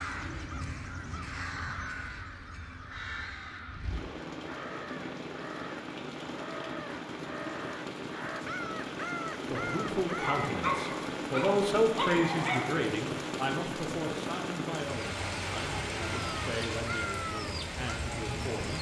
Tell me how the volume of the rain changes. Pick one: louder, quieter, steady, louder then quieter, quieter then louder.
louder.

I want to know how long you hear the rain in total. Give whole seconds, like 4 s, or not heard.
19 s.